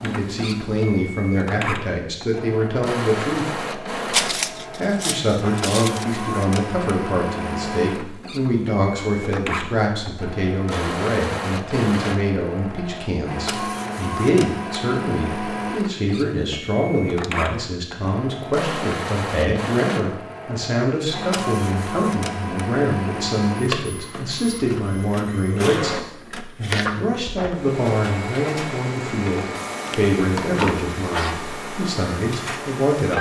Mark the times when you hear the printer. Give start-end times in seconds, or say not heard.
0.0-33.1.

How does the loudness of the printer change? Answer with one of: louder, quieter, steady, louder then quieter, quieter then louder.
steady.